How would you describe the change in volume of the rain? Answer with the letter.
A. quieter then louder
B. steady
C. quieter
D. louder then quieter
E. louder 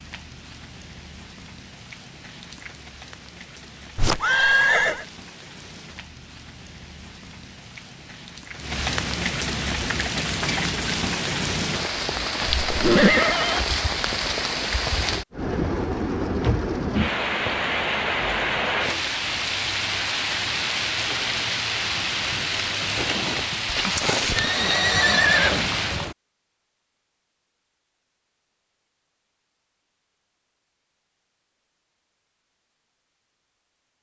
E.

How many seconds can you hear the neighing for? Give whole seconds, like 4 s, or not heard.
4 s.